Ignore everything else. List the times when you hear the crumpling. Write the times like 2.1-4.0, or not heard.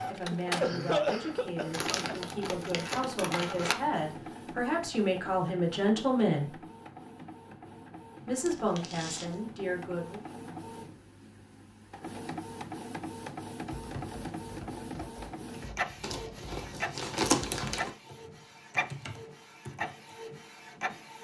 1.7-3.8, 8.4-9.4, 16.0-17.9.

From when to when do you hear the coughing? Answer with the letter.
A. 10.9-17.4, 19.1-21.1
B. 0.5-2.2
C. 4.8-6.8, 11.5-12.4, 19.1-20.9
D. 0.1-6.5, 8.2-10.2
B.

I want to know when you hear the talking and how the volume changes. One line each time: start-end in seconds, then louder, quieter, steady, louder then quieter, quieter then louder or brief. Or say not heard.
0.1-6.5 louder
8.2-10.2 brief.